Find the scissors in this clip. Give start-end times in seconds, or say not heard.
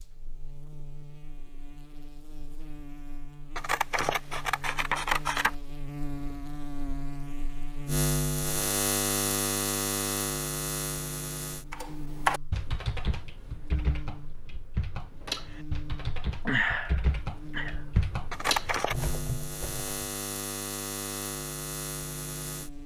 3.5-5.5, 18.3-18.9.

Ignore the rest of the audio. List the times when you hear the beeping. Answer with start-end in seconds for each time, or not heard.
not heard.